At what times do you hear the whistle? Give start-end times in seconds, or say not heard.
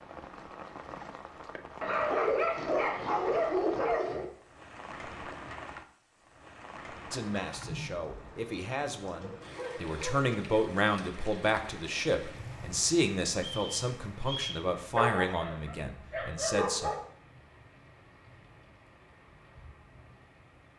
13.3-14.7.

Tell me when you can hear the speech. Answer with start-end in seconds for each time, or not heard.
7.1-16.9.